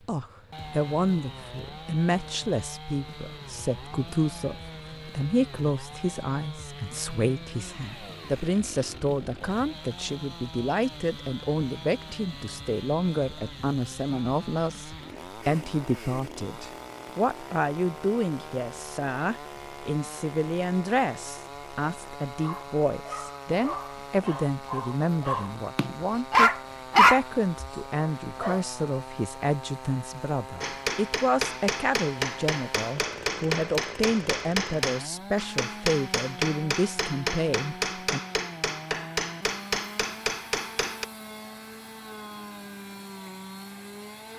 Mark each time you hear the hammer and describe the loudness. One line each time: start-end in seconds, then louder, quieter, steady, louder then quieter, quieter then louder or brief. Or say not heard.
30.6-41.0 steady.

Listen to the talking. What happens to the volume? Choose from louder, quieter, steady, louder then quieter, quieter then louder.
steady.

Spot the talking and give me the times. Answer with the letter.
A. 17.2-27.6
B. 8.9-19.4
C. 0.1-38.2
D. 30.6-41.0
C.